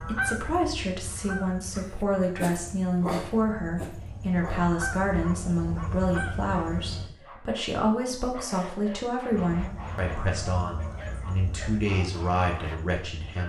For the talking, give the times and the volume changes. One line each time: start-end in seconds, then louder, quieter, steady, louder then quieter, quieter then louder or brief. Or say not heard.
0.0-13.4 steady.